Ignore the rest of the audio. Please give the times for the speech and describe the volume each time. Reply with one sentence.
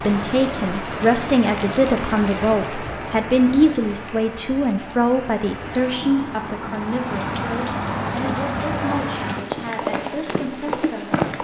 The speech can be heard from 0.1 to 11.2 s, getting quieter.